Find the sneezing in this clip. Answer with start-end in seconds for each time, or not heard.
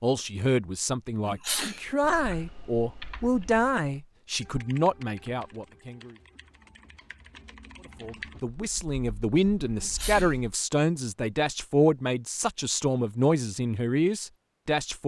1.2-1.8, 9.8-10.3.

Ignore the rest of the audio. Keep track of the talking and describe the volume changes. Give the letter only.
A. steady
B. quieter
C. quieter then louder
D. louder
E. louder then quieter
A.